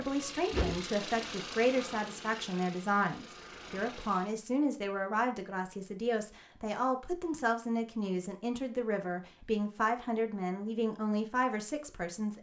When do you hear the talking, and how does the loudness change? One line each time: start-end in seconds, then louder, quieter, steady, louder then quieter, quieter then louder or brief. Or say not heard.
0.0-12.3 steady.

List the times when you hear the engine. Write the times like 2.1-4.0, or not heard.
0.0-4.3.